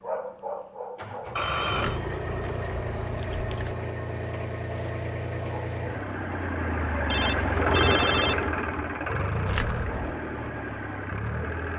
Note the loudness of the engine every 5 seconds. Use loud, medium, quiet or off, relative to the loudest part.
medium, loud, medium.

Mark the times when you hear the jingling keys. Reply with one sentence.
The jingling keys can be heard from 1.7 to 3.8 s and from 9.4 to 10.2 s.